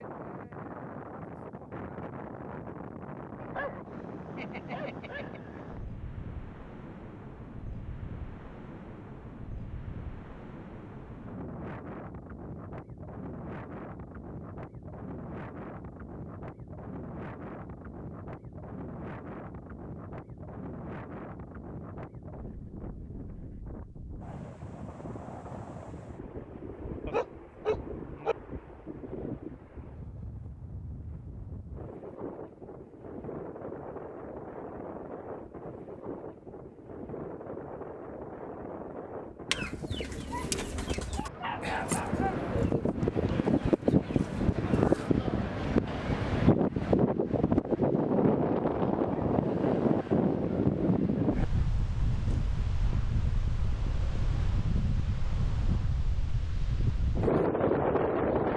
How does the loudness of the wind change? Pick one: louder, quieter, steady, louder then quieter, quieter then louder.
louder.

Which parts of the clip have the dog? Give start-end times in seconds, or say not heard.
3.4-5.4, 27.1-28.4, 40.3-42.5.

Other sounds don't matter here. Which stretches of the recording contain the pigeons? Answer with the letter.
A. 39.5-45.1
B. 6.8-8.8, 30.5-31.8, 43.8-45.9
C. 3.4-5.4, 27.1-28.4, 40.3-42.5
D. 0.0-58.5
A.